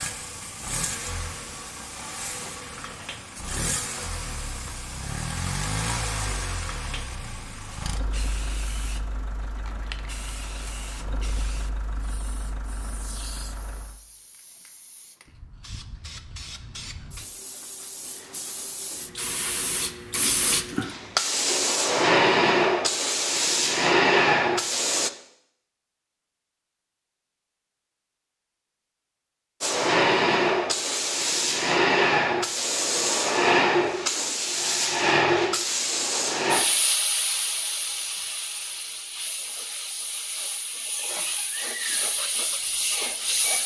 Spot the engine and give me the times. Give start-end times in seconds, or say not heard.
0.0-13.9.